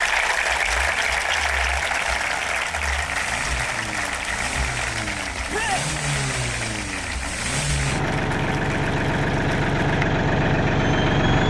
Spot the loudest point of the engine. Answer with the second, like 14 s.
11 s.